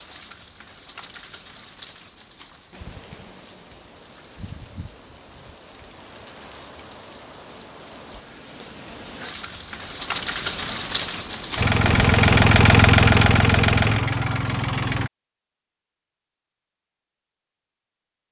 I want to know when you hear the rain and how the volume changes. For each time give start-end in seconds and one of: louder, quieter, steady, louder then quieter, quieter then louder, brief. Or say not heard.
0.0-12.5 louder.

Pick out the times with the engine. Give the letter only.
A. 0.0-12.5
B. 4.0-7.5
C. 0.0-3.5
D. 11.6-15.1
D.